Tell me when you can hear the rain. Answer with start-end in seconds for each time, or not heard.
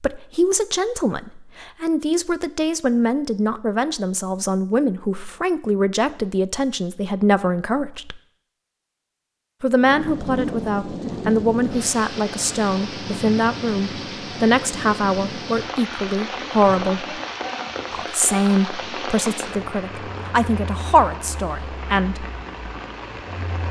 9.7-23.6.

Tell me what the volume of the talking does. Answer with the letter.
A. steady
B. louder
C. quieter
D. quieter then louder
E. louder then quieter
A.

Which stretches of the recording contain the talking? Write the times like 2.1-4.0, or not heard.
0.0-8.2, 9.6-17.2, 17.9-22.2.